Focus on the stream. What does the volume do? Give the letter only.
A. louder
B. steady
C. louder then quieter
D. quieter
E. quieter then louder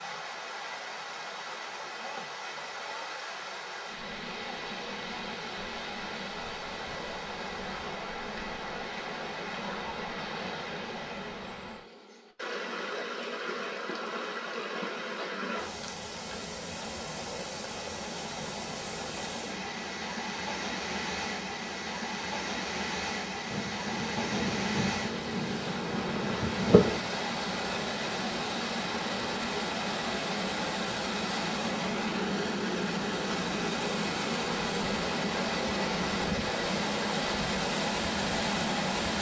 A.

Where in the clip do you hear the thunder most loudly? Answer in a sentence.
The loudest moment of the thunder is at 27 seconds.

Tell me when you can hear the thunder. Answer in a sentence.
You can hear the thunder from 23.5 to 27.0 s.